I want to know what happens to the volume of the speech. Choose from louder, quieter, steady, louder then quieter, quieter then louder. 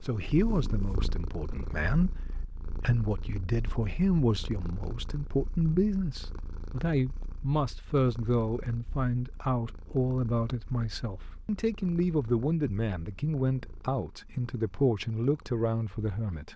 steady.